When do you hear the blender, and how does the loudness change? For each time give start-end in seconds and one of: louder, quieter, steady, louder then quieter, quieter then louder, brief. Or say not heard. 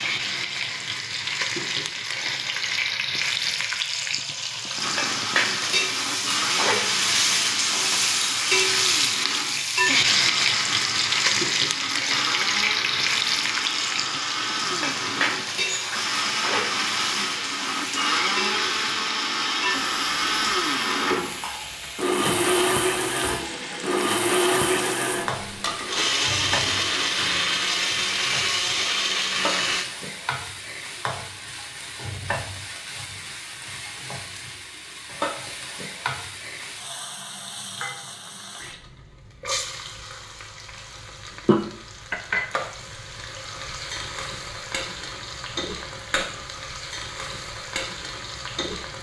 4.7-29.9 louder.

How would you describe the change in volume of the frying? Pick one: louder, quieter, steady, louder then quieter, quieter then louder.
quieter.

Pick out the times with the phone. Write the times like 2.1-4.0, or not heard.
not heard.